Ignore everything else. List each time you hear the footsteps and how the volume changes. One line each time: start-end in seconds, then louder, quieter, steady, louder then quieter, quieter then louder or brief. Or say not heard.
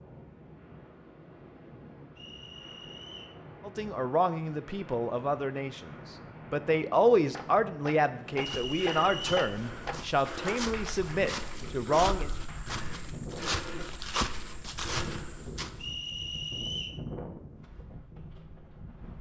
8.2-15.9 louder.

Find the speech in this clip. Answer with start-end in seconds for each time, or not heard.
3.6-12.3.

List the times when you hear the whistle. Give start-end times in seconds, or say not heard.
2.1-3.4, 8.4-9.6, 15.8-17.0.